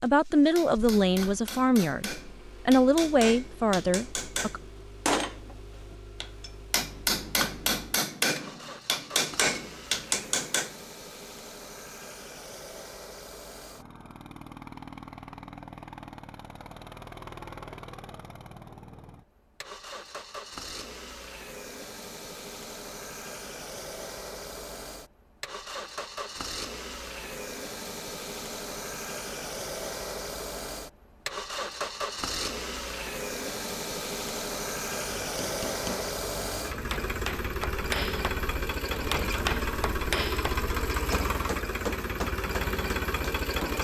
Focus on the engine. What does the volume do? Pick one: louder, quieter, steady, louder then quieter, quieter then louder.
louder.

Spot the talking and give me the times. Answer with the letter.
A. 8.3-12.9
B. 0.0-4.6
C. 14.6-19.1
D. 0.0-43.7
B.